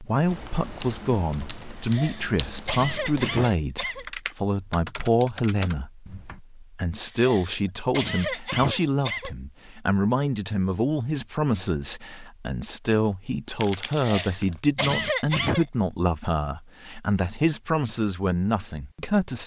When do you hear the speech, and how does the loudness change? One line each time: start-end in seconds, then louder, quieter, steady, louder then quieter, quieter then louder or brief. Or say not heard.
0.0-19.4 steady.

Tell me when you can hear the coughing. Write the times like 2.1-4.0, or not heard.
1.8-4.0, 7.0-9.3, 13.9-15.7.